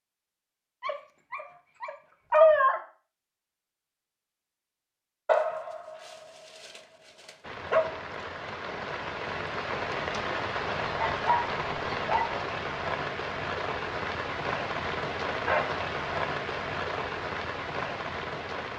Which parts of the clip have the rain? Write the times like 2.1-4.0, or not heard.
7.4-18.7.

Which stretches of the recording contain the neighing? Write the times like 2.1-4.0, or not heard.
not heard.